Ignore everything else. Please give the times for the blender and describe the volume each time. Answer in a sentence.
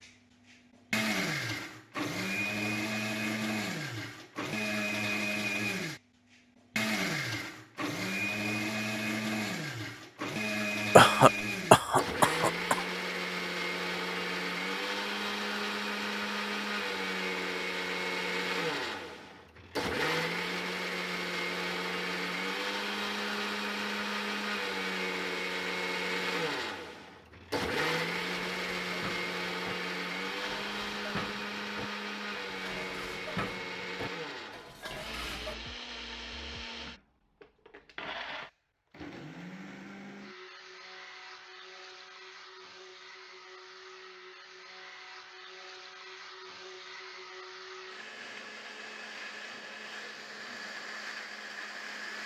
You can hear the blender from 0.0 to 52.2 s, getting quieter.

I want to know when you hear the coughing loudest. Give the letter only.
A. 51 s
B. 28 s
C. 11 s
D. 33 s
C.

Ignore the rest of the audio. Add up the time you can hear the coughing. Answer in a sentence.
You can hear the coughing for 2 seconds altogether.